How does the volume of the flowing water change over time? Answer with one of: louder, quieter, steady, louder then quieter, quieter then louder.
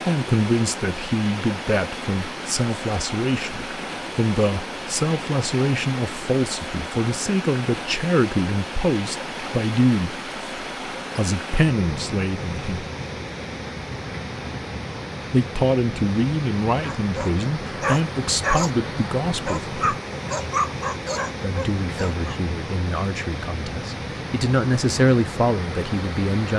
steady.